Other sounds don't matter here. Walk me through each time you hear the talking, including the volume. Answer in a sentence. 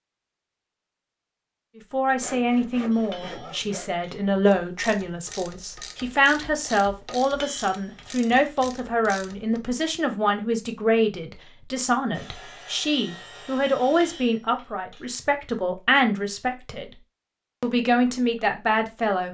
The talking can be heard from 1.8 to 16.9 s, at a steady volume; and briefly from 17.6 to 19.2 s.